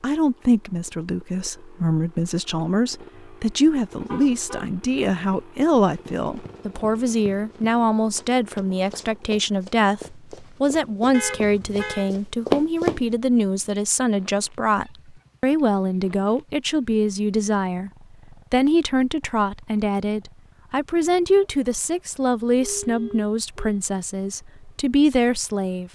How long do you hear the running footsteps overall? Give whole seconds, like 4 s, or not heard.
7 s.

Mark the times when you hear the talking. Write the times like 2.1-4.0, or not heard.
0.0-17.9, 18.5-25.9.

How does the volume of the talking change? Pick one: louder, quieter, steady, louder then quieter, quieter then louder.
steady.